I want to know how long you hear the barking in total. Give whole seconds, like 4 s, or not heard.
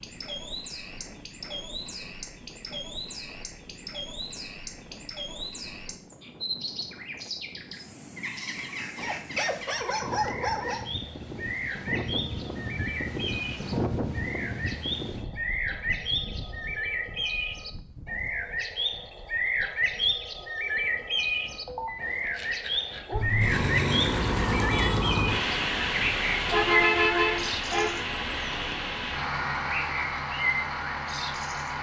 4 s.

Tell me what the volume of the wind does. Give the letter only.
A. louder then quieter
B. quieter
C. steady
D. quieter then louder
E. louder
A.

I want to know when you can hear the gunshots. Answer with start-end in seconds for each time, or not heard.
not heard.